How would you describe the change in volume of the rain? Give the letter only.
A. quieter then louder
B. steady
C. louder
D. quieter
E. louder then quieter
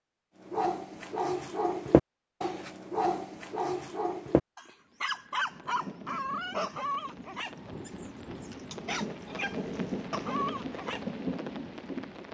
C.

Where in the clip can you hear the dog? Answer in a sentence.
The dog can be heard from 0.5 to 11.0 s.